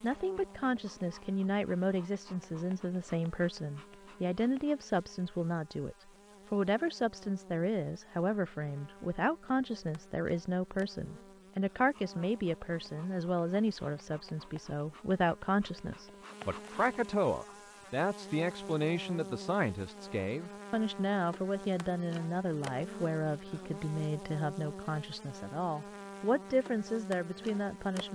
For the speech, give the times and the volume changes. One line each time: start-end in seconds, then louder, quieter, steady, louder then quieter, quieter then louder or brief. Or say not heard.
0.0-28.1 steady.